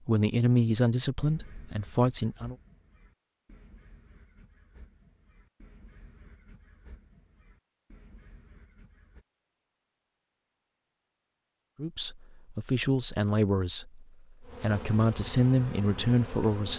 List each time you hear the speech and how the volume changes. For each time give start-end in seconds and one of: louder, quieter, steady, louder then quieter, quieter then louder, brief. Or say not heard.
0.1-2.5 brief
11.8-16.7 quieter then louder.